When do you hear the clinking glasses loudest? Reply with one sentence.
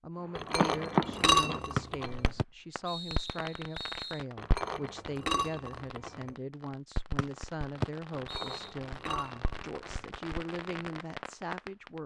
The loudest moment of the clinking glasses is at 1 second.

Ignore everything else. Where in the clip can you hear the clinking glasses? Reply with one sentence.
You can hear the clinking glasses from 0.3 to 2.3 s, from 4.3 to 6.3 s and from 8.2 to 10.1 s.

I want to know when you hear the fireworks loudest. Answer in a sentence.
The volume of the fireworks peaks at 1 second.